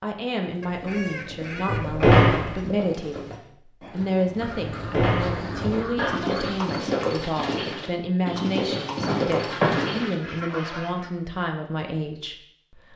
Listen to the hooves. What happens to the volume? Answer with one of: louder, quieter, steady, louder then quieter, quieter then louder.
louder.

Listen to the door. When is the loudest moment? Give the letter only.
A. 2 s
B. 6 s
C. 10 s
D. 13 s
A.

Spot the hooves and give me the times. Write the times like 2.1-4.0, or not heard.
0.7-10.3.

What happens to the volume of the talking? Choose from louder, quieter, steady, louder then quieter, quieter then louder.
steady.